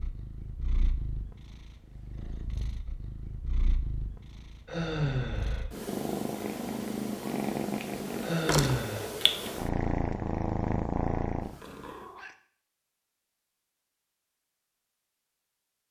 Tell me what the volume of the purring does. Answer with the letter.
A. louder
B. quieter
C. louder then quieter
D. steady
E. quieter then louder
A.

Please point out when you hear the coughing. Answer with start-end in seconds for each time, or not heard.
not heard.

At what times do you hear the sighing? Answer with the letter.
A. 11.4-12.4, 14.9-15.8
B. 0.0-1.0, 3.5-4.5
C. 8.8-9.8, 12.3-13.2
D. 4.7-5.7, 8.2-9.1
D.